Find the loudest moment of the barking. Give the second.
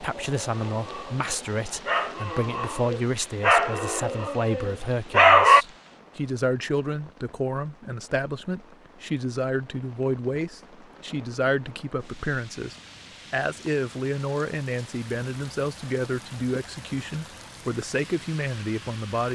5 s.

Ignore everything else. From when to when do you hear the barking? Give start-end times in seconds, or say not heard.
0.3-5.7.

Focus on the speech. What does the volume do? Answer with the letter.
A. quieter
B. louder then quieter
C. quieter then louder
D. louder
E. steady
E.